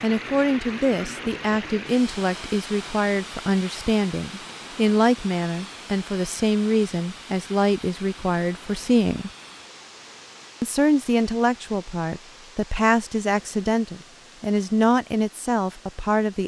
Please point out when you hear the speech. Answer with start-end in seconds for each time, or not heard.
0.0-9.3, 10.6-16.4.